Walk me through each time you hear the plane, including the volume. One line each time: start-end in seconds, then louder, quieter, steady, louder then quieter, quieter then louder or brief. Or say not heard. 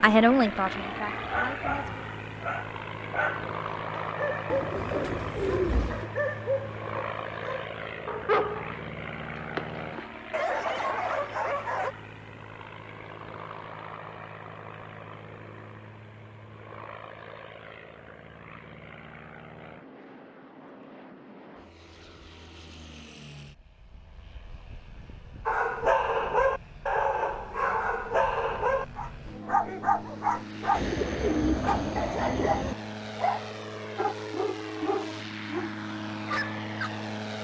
0.0-37.3 quieter then louder.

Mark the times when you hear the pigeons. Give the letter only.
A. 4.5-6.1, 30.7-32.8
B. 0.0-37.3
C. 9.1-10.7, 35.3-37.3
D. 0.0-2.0
A.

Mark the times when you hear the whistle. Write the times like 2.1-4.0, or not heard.
not heard.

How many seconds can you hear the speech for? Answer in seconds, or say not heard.
2 s.